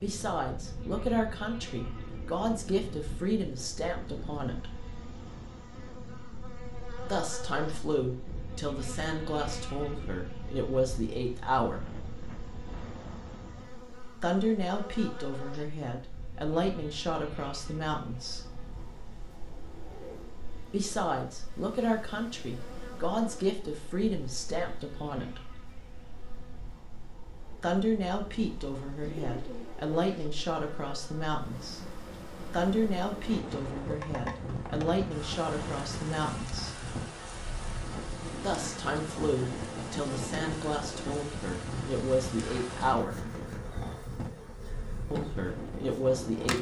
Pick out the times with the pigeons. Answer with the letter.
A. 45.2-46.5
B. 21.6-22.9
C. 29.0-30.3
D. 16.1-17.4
C.